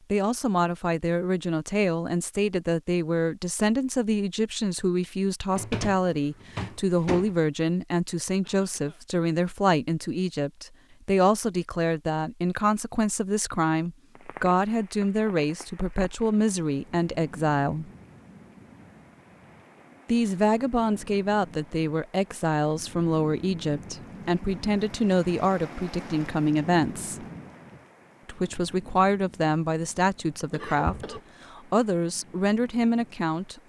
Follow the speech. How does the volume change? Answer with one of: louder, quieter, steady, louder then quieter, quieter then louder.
steady.